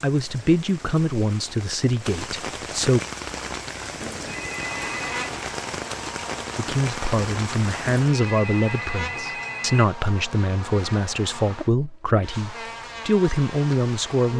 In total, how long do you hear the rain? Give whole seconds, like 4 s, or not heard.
8 s.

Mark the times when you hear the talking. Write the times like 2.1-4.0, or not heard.
0.0-3.0, 6.5-14.3.